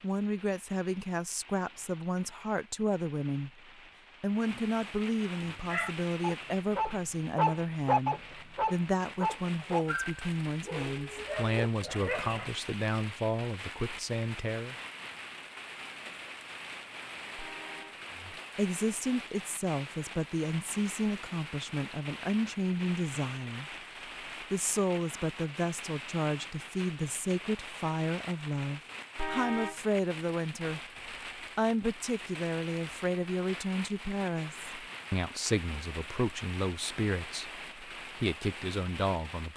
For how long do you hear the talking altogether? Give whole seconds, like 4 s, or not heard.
35 s.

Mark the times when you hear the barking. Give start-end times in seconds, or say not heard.
5.4-12.5.